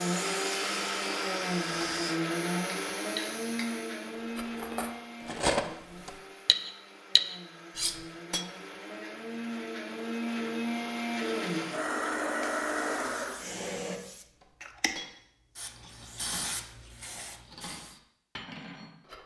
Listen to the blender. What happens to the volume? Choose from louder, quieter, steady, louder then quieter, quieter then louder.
quieter then louder.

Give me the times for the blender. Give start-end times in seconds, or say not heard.
0.0-14.0.